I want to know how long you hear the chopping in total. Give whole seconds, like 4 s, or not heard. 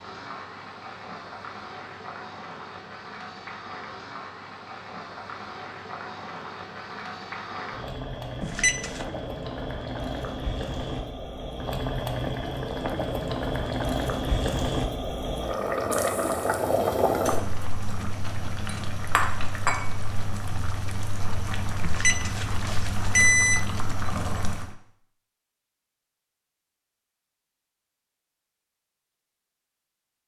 not heard.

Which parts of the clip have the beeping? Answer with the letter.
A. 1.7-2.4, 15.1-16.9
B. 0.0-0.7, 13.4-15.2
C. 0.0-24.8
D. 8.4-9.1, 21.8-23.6
D.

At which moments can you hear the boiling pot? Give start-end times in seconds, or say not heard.
0.0-24.8.